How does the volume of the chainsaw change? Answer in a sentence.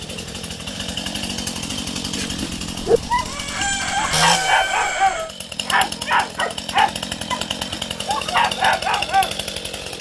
The volume of the chainsaw stays about the same.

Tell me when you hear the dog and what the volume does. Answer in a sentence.
The dog can be heard from 2.1 to 9.4 s, at a steady volume.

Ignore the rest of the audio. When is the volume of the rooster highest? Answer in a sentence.
The loudest moment of the rooster is at 4 seconds.